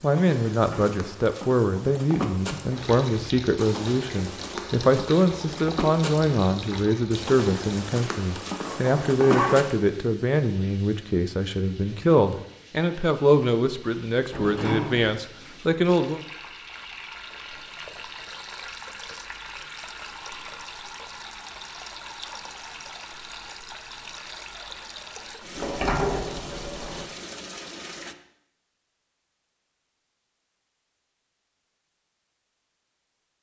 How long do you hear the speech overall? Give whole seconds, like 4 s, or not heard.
16 s.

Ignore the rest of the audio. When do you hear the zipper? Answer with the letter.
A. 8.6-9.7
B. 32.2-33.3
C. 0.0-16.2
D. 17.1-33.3
A.